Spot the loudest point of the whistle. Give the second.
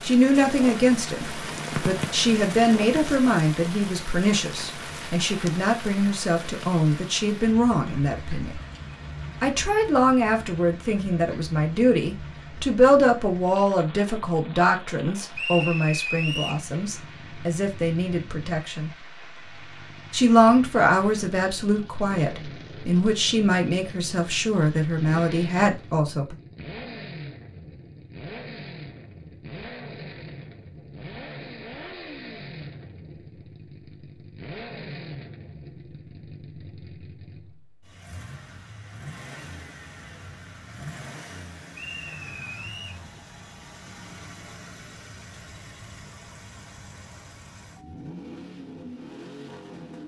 16 s.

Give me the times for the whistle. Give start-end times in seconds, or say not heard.
15.3-16.6, 41.7-43.0.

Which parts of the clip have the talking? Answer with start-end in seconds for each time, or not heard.
0.0-8.6, 9.4-18.9, 20.1-26.4.